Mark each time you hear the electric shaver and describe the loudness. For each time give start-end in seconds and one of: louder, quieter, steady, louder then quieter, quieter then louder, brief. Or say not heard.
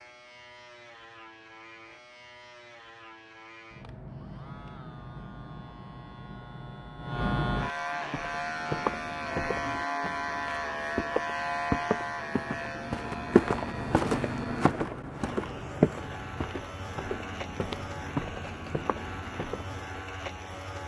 0.0-20.8 louder then quieter.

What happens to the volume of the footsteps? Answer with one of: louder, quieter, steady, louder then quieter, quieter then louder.
louder then quieter.